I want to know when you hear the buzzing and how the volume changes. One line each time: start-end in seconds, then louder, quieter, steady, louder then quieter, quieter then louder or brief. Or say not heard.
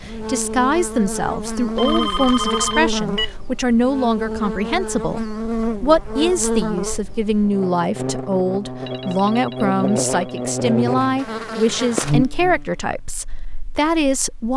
0.0-14.5 steady.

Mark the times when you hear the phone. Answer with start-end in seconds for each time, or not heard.
1.6-3.4, 8.8-10.4.